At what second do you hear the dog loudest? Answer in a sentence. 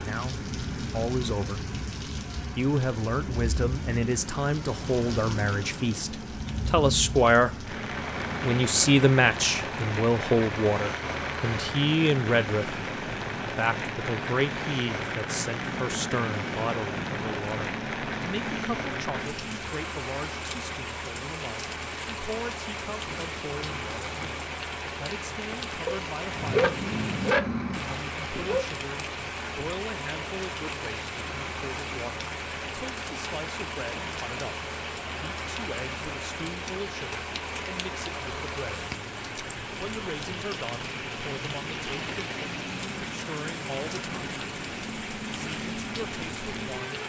The volume of the dog peaks at 27 seconds.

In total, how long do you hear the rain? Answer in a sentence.
You can hear the rain for 47 seconds altogether.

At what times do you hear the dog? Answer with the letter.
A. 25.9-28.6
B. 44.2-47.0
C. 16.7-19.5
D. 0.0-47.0
A.